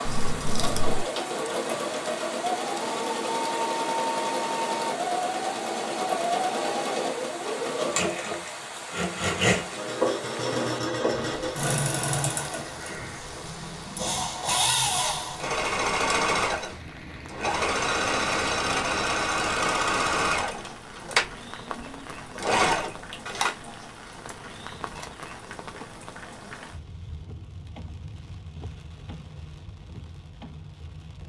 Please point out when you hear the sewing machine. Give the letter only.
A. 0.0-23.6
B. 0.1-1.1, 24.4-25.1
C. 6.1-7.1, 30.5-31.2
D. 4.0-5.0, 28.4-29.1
A.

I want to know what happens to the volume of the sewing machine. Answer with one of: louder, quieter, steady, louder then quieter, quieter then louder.
steady.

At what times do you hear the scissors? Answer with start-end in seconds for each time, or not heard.
0.1-1.1, 24.4-25.1.